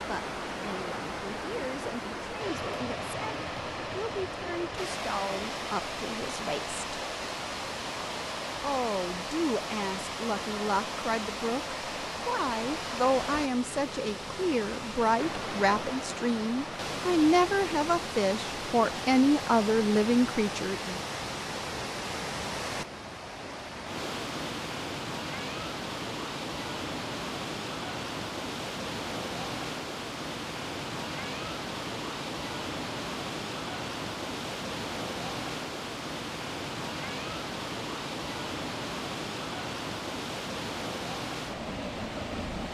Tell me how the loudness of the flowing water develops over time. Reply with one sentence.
The volume of the flowing water stays about the same.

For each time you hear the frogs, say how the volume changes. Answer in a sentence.
You can't hear the frogs here.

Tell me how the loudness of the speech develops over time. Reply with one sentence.
The loudness of the speech goes up.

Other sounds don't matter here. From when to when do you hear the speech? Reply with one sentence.
You can hear the speech from 0.0 to 7.0 s and from 8.6 to 20.9 s.